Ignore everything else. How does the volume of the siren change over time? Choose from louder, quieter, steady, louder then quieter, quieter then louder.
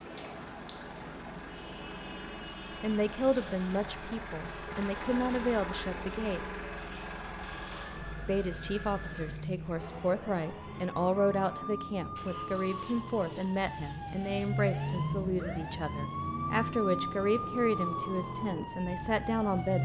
louder.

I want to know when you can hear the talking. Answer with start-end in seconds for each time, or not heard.
2.8-6.5, 8.2-19.7.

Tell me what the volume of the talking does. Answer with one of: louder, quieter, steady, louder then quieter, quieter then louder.
steady.